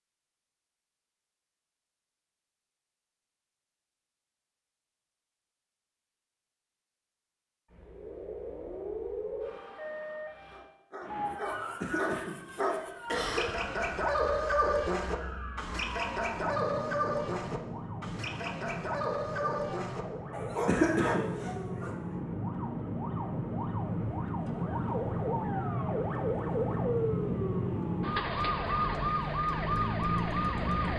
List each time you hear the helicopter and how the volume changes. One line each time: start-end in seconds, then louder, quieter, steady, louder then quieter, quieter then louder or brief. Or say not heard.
not heard.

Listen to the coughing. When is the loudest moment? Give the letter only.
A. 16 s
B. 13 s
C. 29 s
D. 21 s
D.